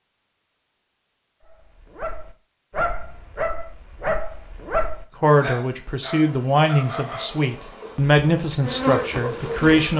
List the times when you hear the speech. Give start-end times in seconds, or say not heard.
5.2-9.9.